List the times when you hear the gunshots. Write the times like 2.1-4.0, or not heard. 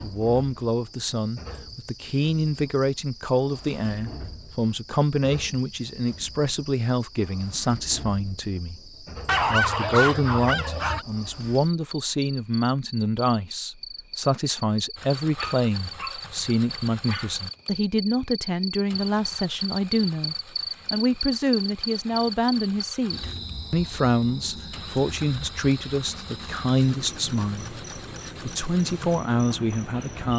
not heard.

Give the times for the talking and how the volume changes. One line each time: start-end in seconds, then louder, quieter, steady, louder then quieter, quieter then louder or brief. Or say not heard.
0.0-30.3 steady.